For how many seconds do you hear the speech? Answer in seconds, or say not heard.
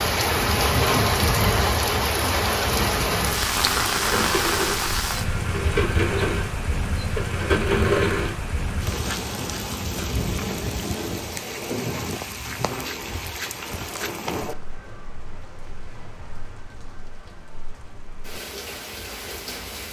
not heard.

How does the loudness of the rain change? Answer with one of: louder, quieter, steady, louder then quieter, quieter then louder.
quieter.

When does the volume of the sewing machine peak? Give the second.
8 s.